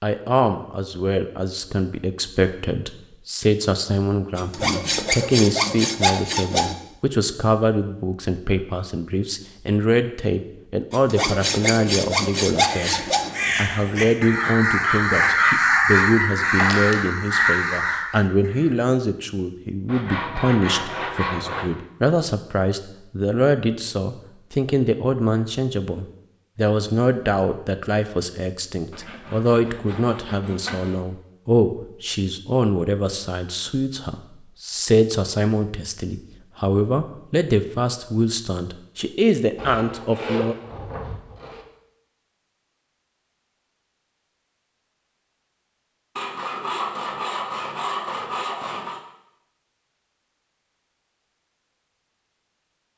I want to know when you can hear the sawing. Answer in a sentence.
The sawing can be heard from 4.3 to 6.8 s, from 10.9 to 13.3 s, from 19.9 to 21.7 s, from 28.9 to 31.0 s, from 39.5 to 41.6 s and from 46.1 to 49.0 s.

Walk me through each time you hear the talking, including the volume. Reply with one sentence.
You can hear the talking from 0.0 to 40.5 s, at a steady volume.